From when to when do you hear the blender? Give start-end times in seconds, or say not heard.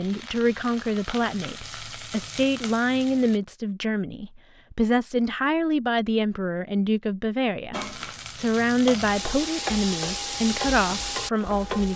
not heard.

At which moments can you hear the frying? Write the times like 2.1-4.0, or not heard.
0.0-3.4, 7.7-11.9.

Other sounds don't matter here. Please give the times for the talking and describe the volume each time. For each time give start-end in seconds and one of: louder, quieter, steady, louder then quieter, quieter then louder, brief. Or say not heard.
0.0-11.9 steady.